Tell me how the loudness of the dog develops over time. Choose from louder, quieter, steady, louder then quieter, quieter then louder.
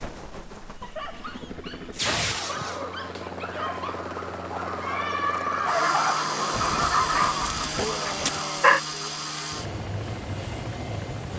louder.